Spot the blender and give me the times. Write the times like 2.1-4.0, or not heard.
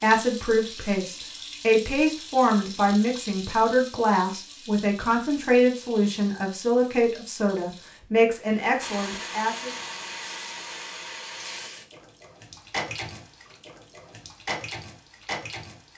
8.8-11.7.